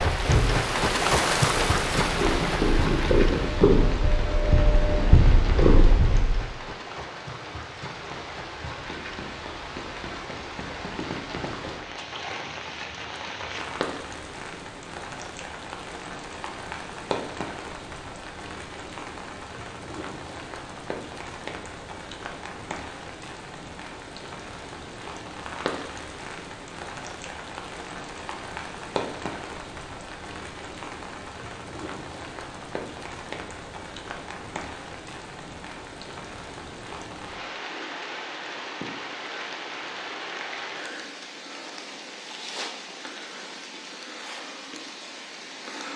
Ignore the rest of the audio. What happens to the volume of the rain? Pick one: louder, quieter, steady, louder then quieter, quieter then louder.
quieter.